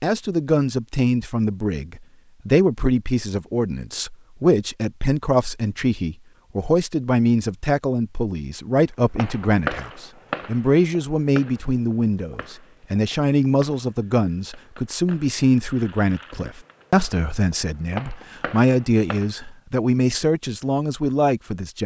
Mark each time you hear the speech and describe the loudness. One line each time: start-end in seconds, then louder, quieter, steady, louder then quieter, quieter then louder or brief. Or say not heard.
0.0-21.8 steady.